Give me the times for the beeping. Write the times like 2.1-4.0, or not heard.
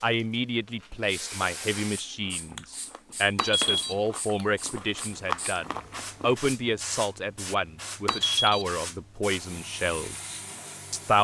3.4-4.0, 8.1-8.7.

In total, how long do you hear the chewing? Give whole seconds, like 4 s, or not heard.
6 s.